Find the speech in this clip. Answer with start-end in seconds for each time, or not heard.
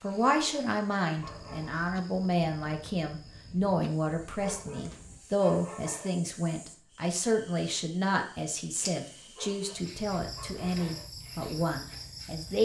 0.0-12.6.